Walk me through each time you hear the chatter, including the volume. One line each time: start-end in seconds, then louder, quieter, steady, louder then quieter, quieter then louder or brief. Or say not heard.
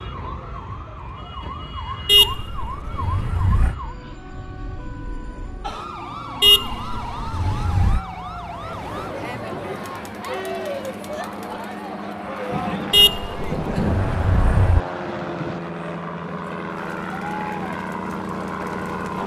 8.6-19.2 quieter.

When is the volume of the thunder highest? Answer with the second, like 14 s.
14 s.